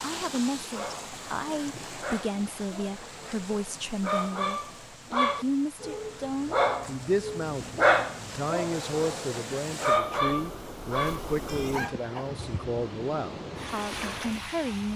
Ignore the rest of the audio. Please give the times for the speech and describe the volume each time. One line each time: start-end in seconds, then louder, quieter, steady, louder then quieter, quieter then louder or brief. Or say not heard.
0.0-14.9 steady.